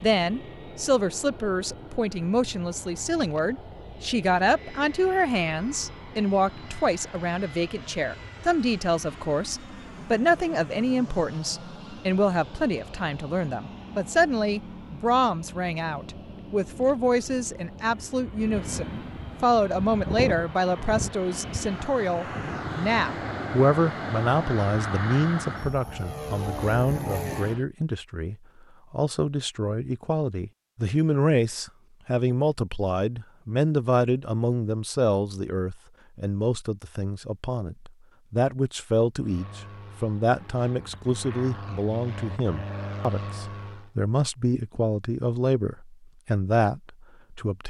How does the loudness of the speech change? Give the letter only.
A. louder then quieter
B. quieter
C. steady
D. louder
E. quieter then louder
C.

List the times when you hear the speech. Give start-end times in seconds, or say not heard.
0.0-47.6.